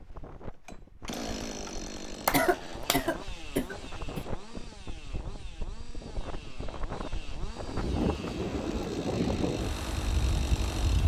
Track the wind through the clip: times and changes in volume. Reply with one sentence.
You can hear the wind from 0.0 to 11.0 s, getting louder.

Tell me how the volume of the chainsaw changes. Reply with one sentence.
The volume of the chainsaw goes down, then up.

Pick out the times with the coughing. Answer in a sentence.
You can hear the coughing from 2.2 to 4.2 s.